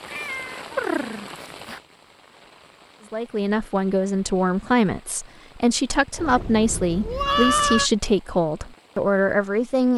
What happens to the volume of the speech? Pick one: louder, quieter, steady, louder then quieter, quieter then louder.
steady.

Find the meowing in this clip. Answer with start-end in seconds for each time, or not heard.
0.1-1.8, 6.2-7.9.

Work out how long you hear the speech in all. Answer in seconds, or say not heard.
7 s.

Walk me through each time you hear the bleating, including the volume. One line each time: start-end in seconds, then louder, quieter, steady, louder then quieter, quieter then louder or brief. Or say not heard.
not heard.